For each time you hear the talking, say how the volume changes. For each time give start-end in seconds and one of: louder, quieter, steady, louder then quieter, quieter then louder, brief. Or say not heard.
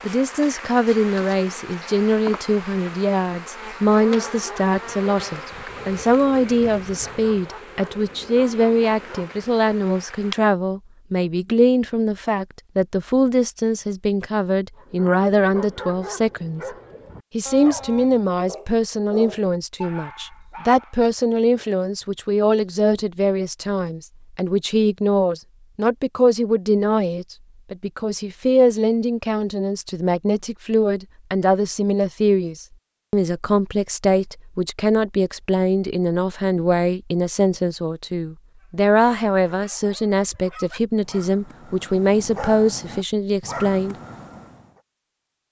0.0-16.6 steady
17.3-44.0 steady.